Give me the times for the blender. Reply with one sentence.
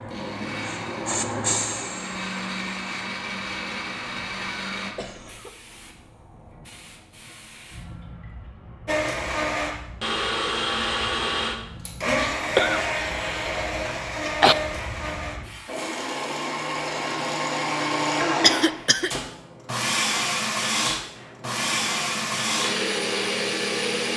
The blender can be heard from 0.0 to 5.0 s and from 8.8 to 24.1 s.